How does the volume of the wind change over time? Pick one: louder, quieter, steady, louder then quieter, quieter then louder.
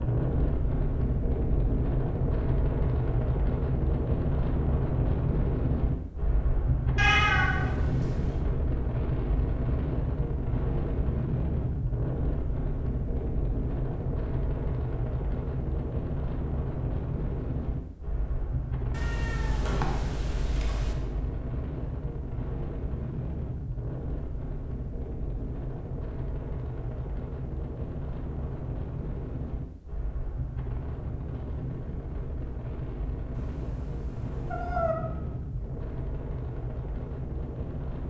quieter.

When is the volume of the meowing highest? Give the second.
7 s.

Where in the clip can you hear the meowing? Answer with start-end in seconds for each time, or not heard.
7.0-8.4, 18.9-20.9, 33.3-35.0.